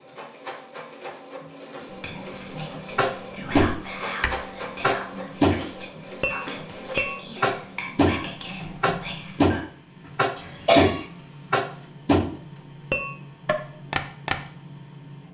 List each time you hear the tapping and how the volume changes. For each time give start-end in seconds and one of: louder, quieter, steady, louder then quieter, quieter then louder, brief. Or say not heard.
3.0-14.3 steady.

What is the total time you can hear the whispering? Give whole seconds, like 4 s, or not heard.
8 s.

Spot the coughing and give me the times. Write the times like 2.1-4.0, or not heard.
10.3-11.1.